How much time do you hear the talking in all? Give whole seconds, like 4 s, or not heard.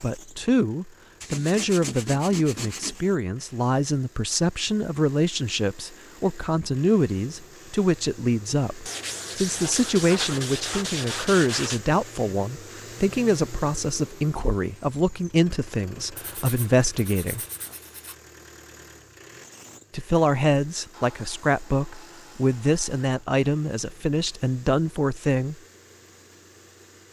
23 s.